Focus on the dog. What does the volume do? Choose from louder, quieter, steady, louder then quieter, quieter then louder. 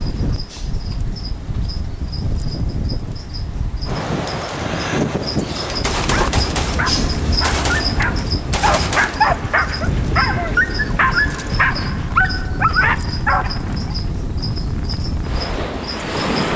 louder.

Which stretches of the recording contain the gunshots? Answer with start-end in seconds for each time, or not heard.
5.7-9.4.